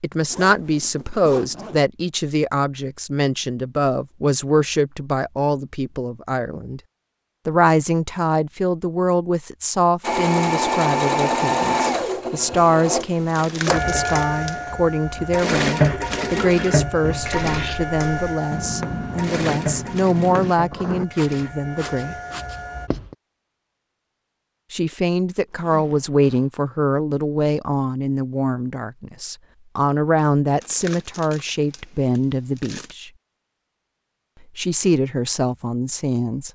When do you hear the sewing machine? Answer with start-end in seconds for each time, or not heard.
10.0-22.9.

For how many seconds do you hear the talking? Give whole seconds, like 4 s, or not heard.
32 s.